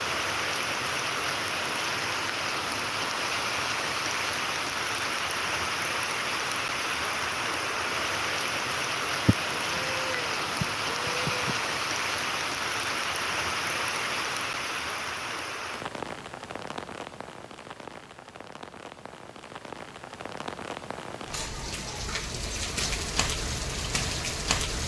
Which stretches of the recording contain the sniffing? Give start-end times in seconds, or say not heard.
not heard.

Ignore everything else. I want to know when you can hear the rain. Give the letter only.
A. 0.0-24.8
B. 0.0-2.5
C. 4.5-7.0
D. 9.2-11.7
A.